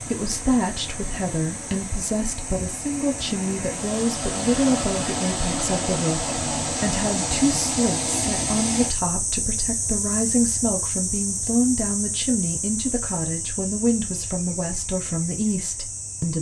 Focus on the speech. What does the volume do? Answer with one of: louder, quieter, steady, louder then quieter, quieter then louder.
steady.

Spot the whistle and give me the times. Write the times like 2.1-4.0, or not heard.
not heard.